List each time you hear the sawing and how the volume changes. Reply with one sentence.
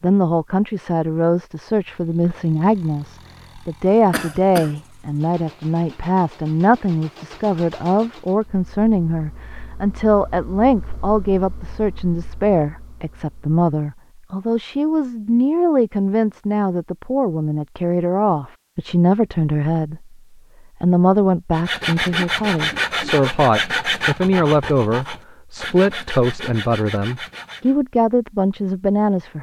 The sawing can be heard from 21.5 to 27.8 s, getting quieter.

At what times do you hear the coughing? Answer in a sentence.
You can hear the coughing from 4.1 to 4.8 s.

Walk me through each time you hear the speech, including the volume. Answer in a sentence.
The speech can be heard from 0.0 to 20.1 s, at a steady volume; and from 20.8 to 29.3 s, at a steady volume.